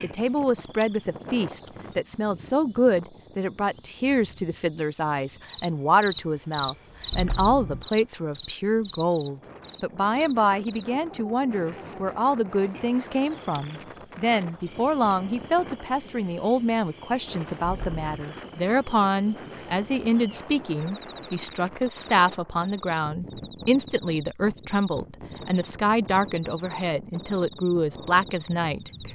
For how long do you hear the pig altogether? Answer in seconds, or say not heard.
not heard.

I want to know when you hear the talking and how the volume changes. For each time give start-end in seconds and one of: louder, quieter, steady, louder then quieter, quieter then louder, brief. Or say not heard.
0.0-29.1 steady.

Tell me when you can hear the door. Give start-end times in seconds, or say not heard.
not heard.